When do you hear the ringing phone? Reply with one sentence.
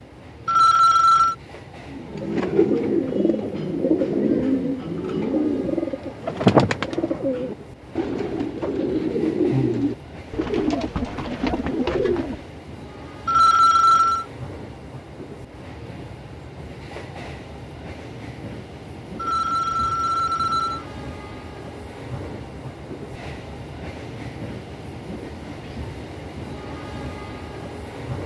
You can hear the ringing phone from 0.5 to 1.4 s, from 13.2 to 14.2 s and from 19.1 to 20.9 s.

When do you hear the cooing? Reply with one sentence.
You can hear the cooing from 1.9 to 12.5 s.